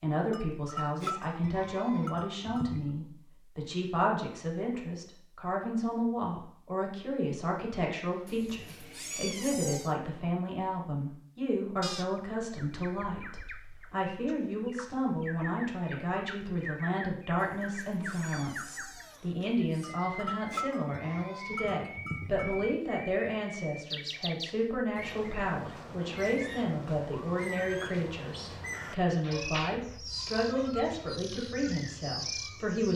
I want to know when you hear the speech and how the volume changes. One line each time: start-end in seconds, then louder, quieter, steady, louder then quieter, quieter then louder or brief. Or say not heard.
0.0-32.9 steady.